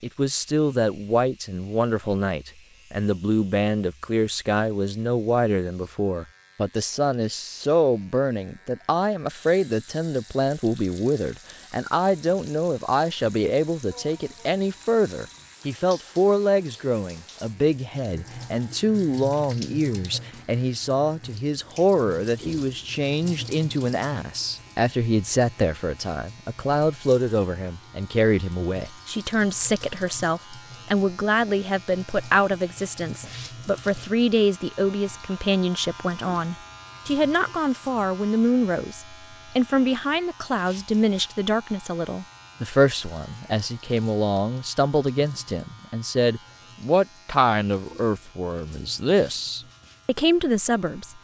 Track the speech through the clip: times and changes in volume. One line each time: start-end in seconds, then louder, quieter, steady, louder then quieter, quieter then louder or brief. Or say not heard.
0.0-51.2 steady.